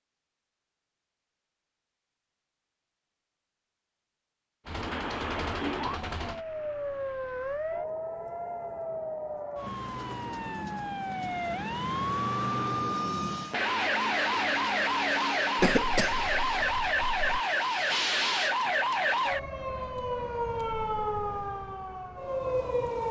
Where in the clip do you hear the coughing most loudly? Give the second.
16 s.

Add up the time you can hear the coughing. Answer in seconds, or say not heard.
2 s.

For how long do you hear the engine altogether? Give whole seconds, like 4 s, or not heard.
2 s.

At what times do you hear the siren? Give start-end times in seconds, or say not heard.
4.7-23.0.